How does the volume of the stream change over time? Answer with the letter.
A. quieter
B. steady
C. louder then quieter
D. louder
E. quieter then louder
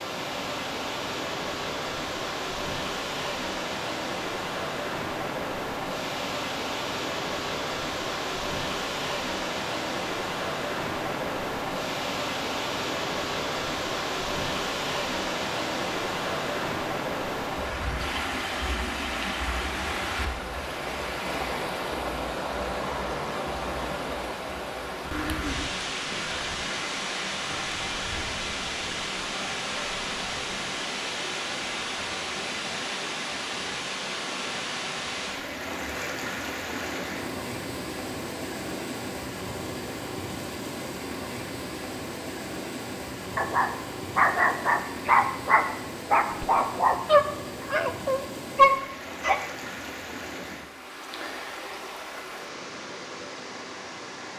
A.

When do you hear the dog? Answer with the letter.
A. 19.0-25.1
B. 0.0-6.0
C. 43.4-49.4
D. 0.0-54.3
C.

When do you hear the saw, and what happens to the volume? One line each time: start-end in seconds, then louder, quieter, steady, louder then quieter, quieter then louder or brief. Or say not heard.
not heard.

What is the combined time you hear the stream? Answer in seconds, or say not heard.
54 s.